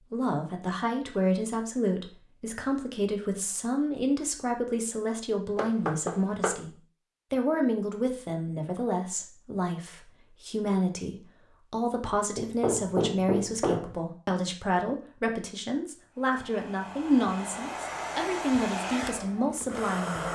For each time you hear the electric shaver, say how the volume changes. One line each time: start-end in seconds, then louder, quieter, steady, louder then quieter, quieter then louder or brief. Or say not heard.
not heard.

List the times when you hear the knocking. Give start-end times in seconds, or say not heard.
5.5-6.6, 12.3-13.9.